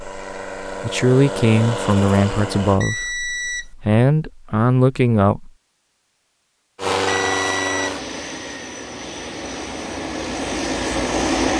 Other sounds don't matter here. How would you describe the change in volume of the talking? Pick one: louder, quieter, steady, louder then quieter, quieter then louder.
quieter then louder.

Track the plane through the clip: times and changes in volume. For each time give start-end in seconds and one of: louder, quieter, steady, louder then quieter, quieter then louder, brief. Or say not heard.
0.0-2.8 brief
6.8-11.5 quieter then louder.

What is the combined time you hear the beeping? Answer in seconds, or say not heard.
2 s.